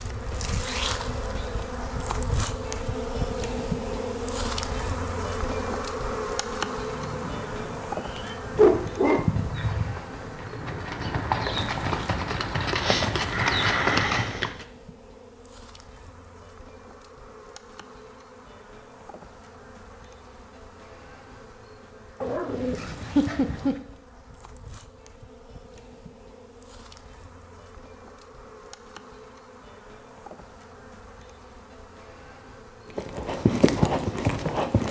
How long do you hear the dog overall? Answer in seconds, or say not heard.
2 s.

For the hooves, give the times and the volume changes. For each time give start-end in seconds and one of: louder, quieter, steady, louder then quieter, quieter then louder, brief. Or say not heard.
6.9-14.7 louder
33.0-34.8 brief.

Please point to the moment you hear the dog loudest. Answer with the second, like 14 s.
9 s.